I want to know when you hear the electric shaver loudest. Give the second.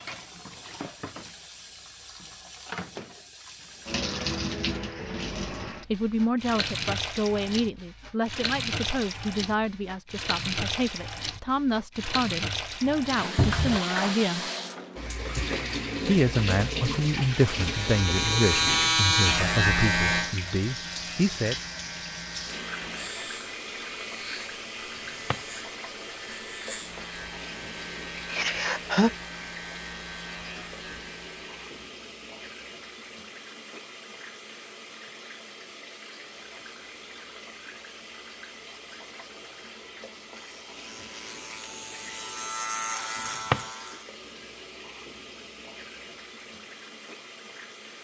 19 s.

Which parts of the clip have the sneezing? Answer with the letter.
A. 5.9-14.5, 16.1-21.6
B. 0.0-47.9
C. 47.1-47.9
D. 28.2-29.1
D.